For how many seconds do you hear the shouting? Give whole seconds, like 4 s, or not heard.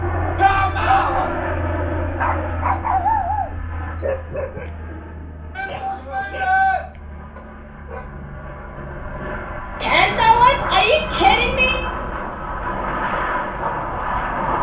4 s.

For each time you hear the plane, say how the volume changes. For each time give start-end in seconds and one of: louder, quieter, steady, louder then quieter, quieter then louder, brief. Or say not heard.
0.0-14.5 quieter then louder.